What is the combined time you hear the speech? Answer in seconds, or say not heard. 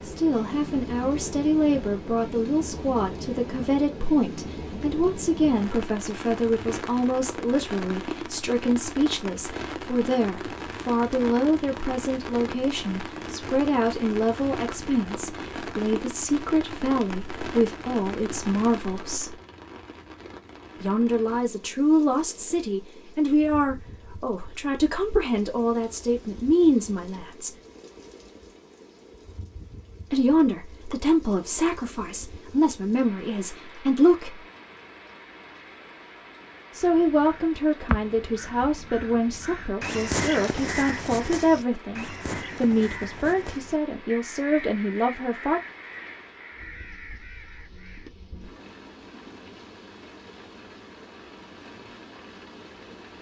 39 s.